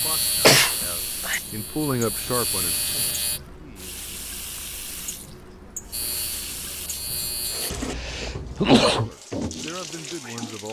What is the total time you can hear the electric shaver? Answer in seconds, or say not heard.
5 s.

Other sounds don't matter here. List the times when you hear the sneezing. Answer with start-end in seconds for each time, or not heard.
0.4-1.4, 7.7-9.1.